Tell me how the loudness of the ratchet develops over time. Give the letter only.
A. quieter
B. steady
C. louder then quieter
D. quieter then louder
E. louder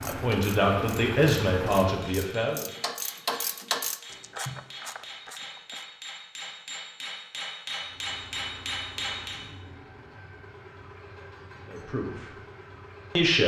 C.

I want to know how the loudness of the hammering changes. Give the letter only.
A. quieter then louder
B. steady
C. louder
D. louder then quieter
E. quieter
C.